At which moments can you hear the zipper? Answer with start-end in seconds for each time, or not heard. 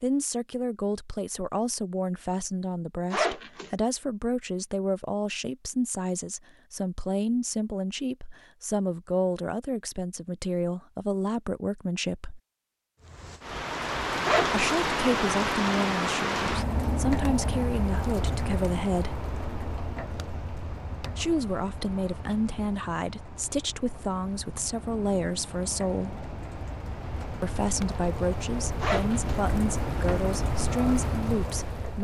3.1-3.7, 14.2-14.6, 28.8-29.4.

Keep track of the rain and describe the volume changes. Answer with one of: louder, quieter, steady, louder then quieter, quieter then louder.
quieter then louder.